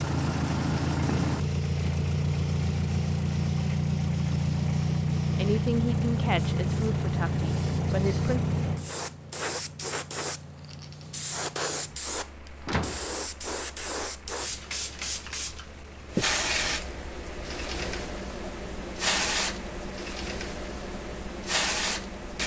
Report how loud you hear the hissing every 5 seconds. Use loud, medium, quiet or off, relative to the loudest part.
quiet, medium, loud, loud, loud.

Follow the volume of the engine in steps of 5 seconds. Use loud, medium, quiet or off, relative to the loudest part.
loud, loud, quiet, quiet, quiet.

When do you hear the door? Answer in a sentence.
The door can be heard from 12.6 to 13.7 s.